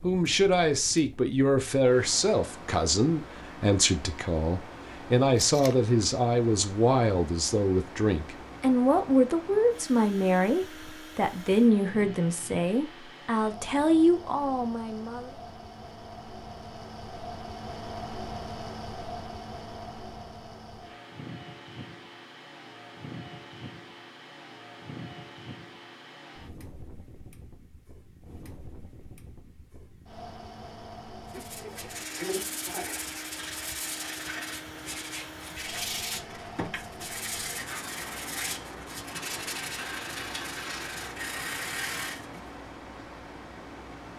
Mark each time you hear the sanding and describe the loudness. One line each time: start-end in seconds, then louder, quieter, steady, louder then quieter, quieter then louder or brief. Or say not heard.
31.2-42.5 steady.